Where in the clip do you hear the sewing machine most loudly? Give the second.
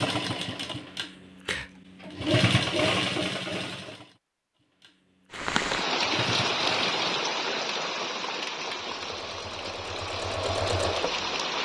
3 s.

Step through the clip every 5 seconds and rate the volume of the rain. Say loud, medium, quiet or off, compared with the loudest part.
off, loud, loud.